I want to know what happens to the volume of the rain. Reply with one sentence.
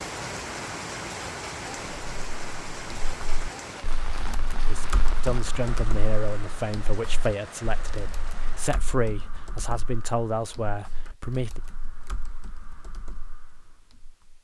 The volume of the rain goes down.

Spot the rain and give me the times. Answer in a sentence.
The rain can be heard from 0.0 to 8.7 s.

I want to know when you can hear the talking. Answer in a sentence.
The talking can be heard from 4.7 to 11.6 s.